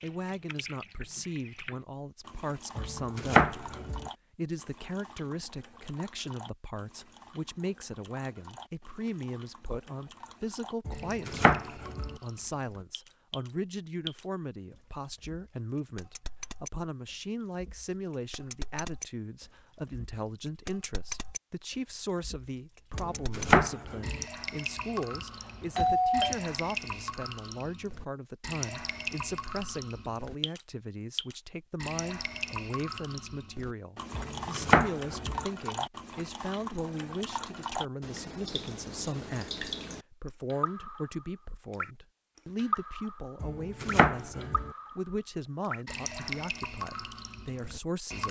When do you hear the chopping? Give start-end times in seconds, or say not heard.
2.8-4.1, 10.8-12.2, 22.9-24.2, 34.1-35.5, 43.4-44.7.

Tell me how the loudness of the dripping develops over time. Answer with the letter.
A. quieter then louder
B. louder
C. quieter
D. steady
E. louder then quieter
B.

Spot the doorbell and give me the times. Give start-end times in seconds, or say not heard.
25.1-26.4.